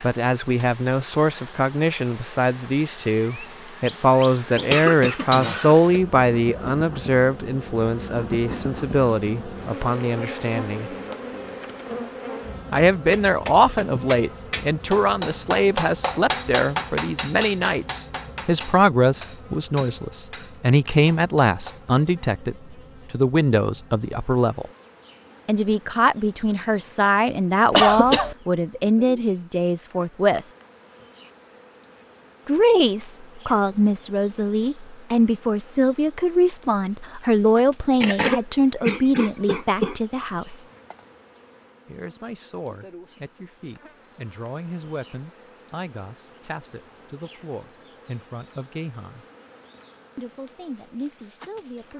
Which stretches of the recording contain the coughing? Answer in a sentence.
You can hear the coughing from 4.5 to 6.0 s, from 27.7 to 28.4 s and from 38.0 to 40.0 s.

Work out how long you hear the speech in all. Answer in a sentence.
The speech can be heard for 45 seconds in total.